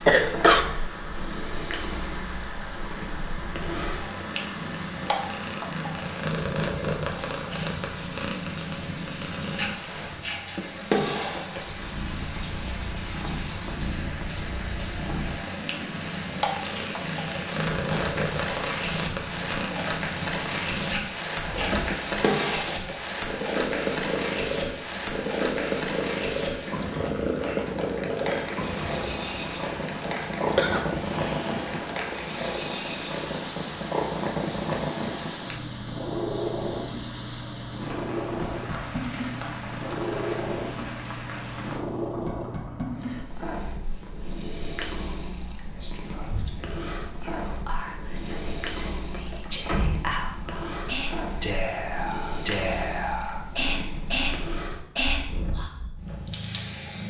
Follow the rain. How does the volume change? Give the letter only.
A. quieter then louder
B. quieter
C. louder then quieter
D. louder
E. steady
C.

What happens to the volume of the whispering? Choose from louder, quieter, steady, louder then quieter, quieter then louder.
louder.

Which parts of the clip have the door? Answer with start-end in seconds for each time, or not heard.
21.4-22.2, 48.2-50.0.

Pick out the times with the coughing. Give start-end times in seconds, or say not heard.
0.1-0.7, 30.6-31.8.